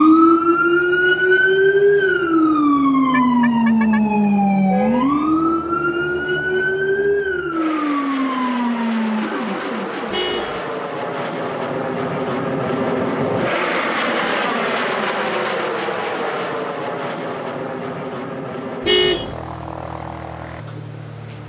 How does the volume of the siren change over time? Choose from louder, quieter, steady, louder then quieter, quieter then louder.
quieter.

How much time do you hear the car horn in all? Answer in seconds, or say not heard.
2 s.